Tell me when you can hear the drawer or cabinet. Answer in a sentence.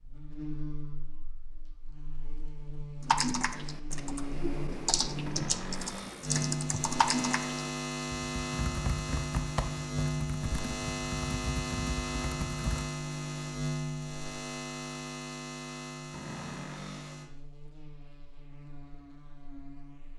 You can hear the drawer or cabinet from 5.2 to 6.4 s and from 16.1 to 17.2 s.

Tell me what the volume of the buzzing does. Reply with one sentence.
The loudness of the buzzing goes up, then down.